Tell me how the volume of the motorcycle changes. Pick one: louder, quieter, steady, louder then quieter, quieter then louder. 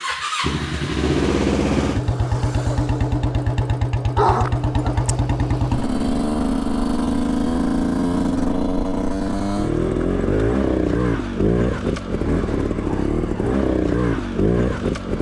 steady.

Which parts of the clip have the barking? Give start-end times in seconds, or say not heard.
4.2-5.1.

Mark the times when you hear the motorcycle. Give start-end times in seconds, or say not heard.
0.0-15.1.